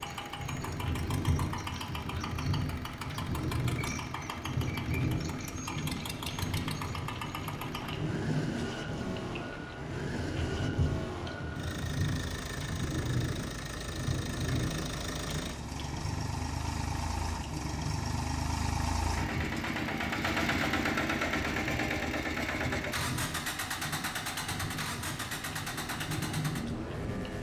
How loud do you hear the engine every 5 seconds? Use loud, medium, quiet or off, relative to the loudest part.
medium, medium, medium, loud, loud, medium.